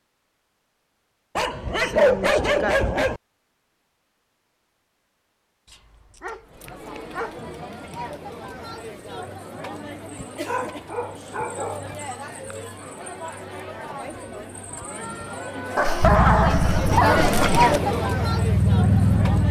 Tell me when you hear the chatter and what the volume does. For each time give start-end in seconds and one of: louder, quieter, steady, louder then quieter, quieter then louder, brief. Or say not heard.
6.5-19.4 louder.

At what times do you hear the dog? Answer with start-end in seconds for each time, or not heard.
1.4-3.2, 5.7-7.3, 10.4-11.9, 15.8-17.8.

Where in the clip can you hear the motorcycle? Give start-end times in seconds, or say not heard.
16.0-19.4.